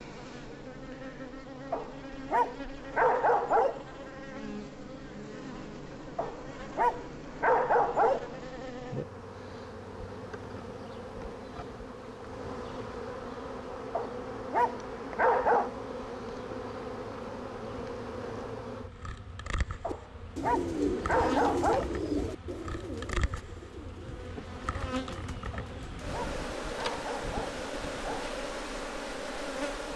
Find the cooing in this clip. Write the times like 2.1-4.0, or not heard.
19.9-28.1.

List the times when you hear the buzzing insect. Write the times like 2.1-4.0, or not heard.
0.0-29.9.